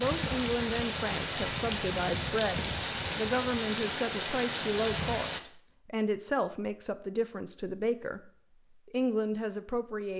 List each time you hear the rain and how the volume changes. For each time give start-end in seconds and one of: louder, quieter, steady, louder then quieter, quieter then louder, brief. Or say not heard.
0.0-5.4 steady.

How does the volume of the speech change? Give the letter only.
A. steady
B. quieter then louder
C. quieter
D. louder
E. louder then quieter
A.